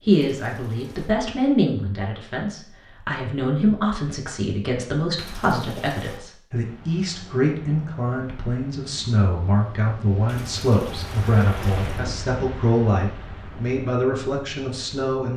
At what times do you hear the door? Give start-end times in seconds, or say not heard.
not heard.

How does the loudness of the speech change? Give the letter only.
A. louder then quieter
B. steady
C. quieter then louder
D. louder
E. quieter
B.